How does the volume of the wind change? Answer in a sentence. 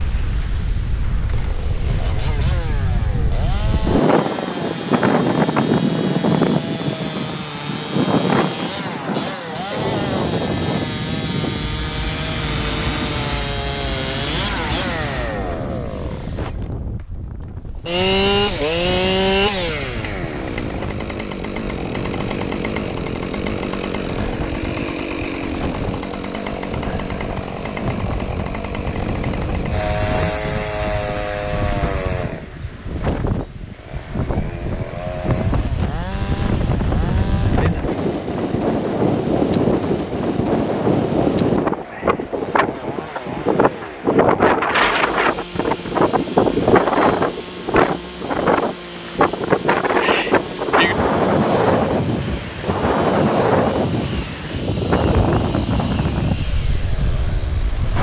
The loudness of the wind goes down, then up.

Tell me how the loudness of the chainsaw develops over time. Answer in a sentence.
The loudness of the chainsaw goes up, then down.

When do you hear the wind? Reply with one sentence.
You can hear the wind from 0.0 to 57.9 s.